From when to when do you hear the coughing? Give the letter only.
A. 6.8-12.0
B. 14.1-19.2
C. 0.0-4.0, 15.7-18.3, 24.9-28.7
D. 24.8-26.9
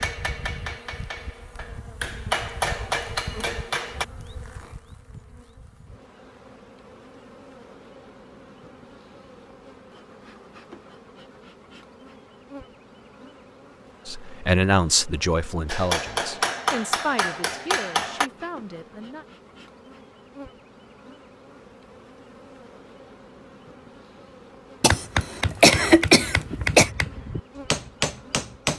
D.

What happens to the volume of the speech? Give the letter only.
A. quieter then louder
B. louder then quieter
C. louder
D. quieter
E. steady
D.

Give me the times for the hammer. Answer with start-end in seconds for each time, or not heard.
0.0-4.0, 15.7-18.3, 24.9-28.7.